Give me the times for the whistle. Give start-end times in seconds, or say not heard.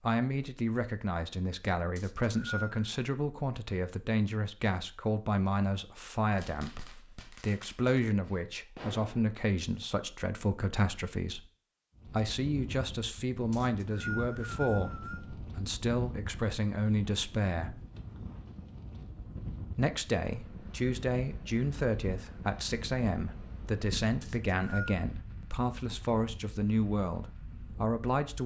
1.9-2.9, 13.5-15.2, 24.2-25.1.